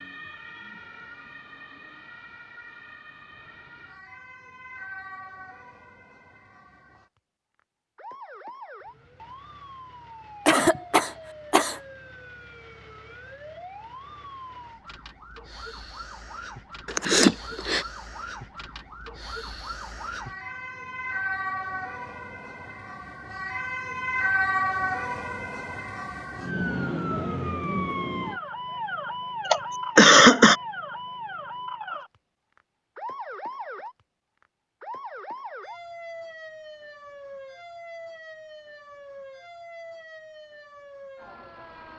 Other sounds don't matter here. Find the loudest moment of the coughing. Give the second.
30 s.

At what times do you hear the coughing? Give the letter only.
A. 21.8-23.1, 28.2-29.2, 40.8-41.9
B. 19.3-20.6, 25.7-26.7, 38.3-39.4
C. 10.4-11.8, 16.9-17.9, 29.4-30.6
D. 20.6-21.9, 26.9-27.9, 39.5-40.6
C.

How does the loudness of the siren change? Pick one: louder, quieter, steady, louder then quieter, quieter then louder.
louder then quieter.